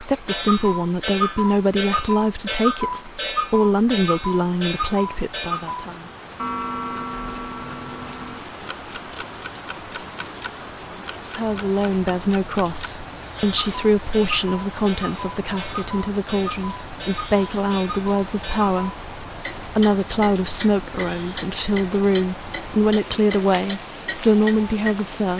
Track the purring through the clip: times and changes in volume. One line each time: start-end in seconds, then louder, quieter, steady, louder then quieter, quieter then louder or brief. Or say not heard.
not heard.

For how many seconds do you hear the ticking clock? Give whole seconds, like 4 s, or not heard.
25 s.